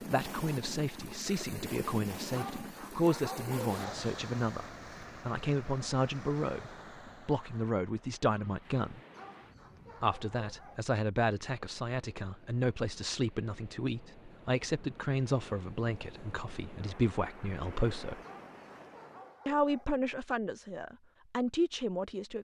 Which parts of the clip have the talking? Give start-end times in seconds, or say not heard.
0.1-9.0, 10.0-18.2, 19.4-22.3.